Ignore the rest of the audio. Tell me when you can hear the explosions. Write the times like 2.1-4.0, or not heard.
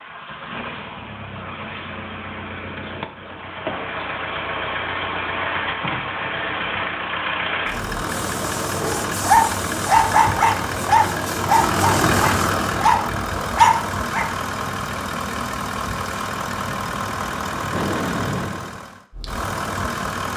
17.7-18.9.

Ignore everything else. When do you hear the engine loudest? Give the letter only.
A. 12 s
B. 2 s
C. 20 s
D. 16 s
A.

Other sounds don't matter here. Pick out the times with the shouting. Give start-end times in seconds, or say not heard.
not heard.